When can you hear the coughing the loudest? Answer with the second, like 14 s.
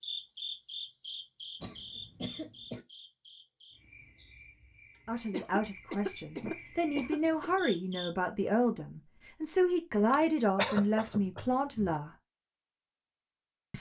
11 s.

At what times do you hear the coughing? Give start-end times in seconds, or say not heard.
1.6-2.9, 5.3-7.5, 10.1-11.9.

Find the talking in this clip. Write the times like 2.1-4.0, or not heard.
5.0-12.1.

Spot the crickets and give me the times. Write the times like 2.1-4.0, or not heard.
0.0-8.1.